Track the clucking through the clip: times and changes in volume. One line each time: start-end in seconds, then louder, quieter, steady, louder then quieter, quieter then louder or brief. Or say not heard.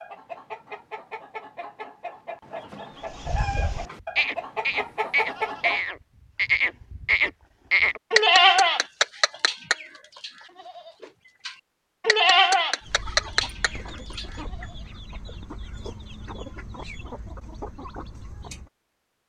0.0-5.8 louder
12.8-18.7 steady.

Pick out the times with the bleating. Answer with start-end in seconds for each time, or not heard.
3.2-14.2.